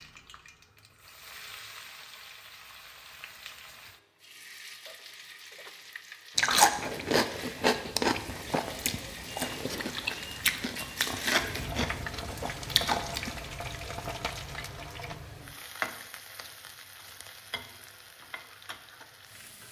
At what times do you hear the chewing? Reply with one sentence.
You can hear the chewing from 6.3 to 13.3 s.